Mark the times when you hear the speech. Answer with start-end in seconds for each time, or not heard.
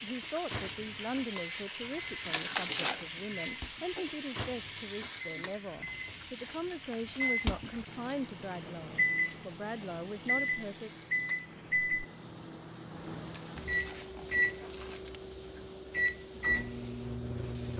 0.0-10.9.